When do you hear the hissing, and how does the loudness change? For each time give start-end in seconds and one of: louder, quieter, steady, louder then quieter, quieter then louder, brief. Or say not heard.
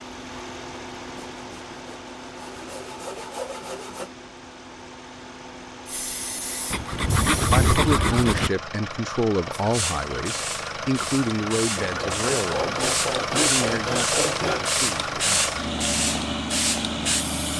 5.8-7.8 brief
9.6-17.5 louder.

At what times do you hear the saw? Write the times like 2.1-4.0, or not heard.
1.4-4.1, 6.7-8.5, 11.8-14.7.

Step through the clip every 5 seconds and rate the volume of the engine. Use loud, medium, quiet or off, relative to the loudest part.
medium, medium, loud, loud.